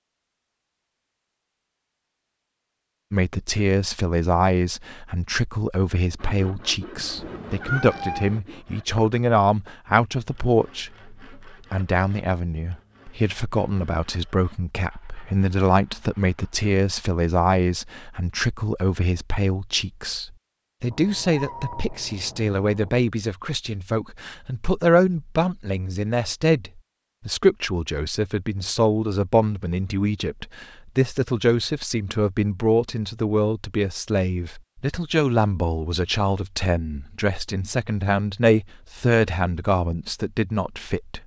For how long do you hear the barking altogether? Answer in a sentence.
The barking can't be heard in this clip.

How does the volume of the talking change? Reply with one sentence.
The loudness of the talking stays about the same.